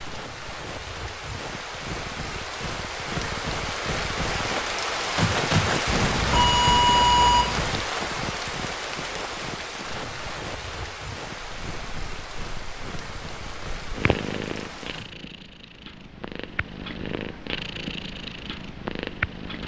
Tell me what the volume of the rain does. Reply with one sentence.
The loudness of the rain goes up, then down.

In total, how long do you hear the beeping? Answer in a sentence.
The beeping can be heard for 2 seconds in total.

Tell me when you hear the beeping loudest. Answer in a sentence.
The loudest moment of the beeping is at 7 seconds.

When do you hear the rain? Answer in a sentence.
You can hear the rain from 0.0 to 15.2 s.